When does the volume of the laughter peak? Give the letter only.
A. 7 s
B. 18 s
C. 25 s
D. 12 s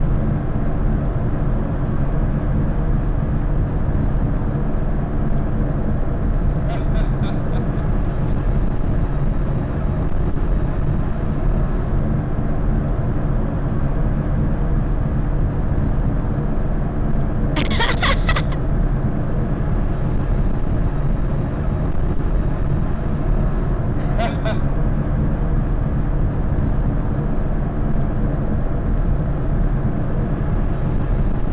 B.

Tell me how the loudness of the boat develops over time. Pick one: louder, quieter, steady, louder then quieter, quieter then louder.
steady.